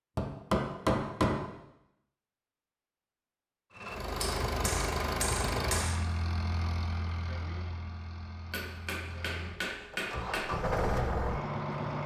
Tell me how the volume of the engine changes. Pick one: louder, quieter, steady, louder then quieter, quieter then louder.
quieter then louder.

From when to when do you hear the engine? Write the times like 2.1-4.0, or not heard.
3.8-12.0.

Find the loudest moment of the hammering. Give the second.
1 s.